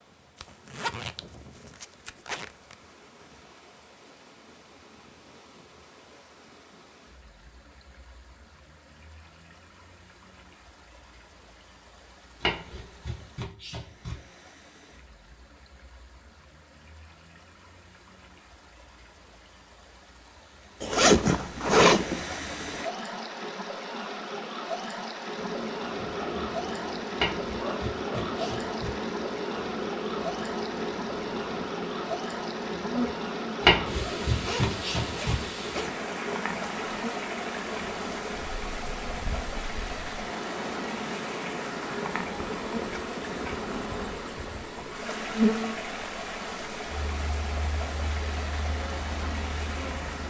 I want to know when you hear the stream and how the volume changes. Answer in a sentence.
You can hear the stream from 0.0 to 50.2 s, getting louder.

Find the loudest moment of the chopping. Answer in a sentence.
The volume of the chopping peaks at 34 seconds.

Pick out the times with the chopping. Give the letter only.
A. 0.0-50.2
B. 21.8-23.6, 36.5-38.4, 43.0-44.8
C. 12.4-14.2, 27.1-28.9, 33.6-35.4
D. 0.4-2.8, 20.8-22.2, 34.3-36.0
C.